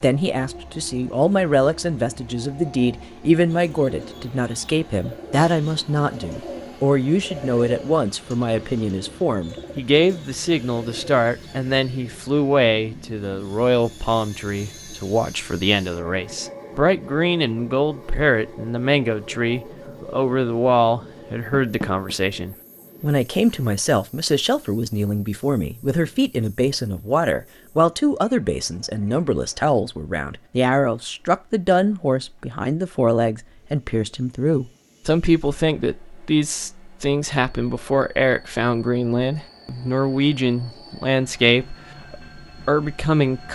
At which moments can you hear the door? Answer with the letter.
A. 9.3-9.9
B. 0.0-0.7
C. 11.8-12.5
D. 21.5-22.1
D.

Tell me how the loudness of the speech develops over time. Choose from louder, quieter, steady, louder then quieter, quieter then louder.
steady.